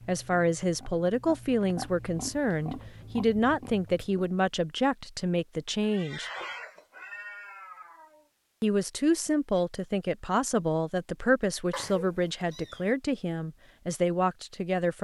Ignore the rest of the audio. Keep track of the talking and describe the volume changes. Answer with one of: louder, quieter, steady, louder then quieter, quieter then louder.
steady.